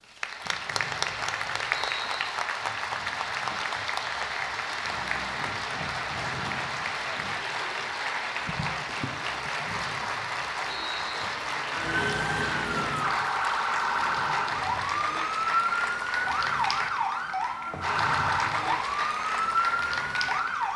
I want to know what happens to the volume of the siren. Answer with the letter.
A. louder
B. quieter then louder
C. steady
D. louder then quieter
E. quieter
C.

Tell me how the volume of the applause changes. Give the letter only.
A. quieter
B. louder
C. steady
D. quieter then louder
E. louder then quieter
C.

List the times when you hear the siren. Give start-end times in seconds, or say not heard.
11.7-20.7.